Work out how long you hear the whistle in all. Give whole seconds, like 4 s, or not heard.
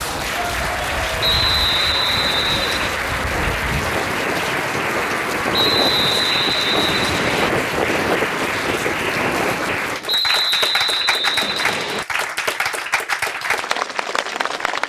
6 s.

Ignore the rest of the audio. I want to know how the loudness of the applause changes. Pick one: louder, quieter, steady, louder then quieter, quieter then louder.
steady.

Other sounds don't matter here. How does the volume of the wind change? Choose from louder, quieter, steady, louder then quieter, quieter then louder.
louder.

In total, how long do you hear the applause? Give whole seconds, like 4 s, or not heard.
15 s.